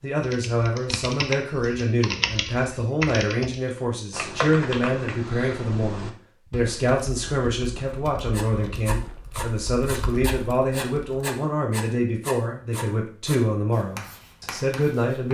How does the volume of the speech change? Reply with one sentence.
The volume of the speech stays about the same.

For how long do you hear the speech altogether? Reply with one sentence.
You can hear the speech for 15 seconds altogether.